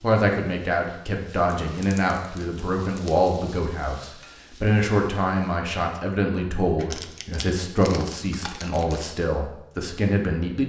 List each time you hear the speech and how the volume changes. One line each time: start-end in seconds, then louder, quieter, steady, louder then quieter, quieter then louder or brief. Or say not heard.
0.0-10.6 steady.